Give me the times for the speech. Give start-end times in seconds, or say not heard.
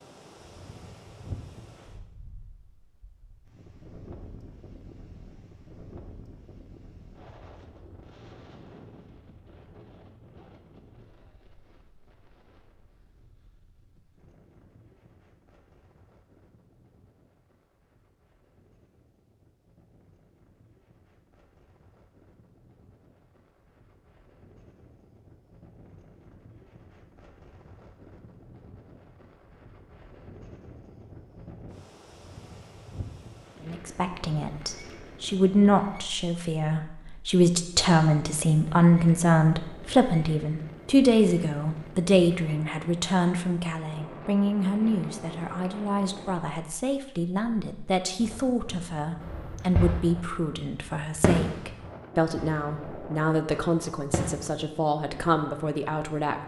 33.6-56.4.